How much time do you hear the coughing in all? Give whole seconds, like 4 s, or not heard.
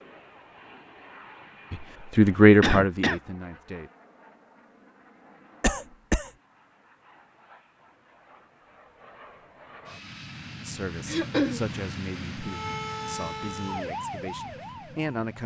2 s.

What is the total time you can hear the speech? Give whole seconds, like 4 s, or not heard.
7 s.